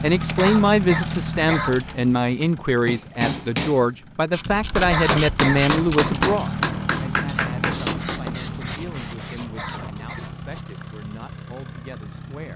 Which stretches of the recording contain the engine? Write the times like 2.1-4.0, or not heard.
0.0-12.5.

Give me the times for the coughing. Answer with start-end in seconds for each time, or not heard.
0.3-1.8, 4.9-5.6, 9.6-10.2.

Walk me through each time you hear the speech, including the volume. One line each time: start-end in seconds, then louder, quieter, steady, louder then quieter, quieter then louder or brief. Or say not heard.
0.0-12.5 quieter.